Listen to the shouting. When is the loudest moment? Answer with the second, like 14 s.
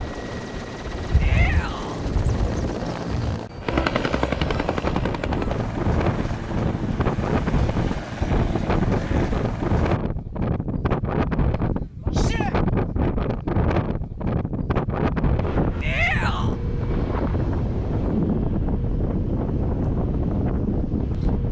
16 s.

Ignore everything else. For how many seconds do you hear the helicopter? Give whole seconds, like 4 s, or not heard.
10 s.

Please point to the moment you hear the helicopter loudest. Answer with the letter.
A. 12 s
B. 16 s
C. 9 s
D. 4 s
D.